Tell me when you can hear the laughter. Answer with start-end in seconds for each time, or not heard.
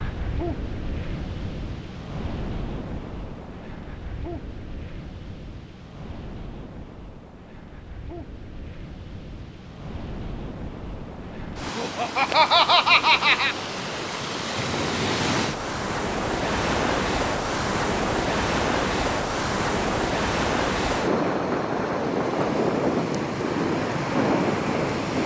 11.8-13.6.